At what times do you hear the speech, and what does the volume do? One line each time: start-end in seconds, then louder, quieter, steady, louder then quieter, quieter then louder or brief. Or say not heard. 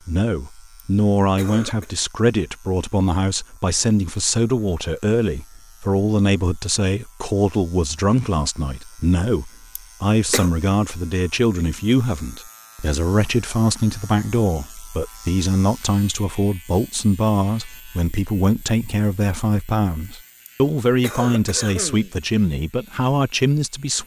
0.1-24.0 steady.